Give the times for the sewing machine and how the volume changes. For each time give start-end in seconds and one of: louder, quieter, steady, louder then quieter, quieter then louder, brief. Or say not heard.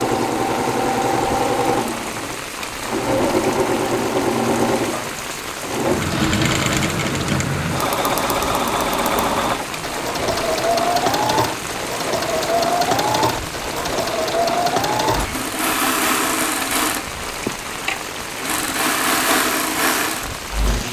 0.0-20.8 steady.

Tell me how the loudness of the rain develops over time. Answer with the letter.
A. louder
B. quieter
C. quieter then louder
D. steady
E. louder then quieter
D.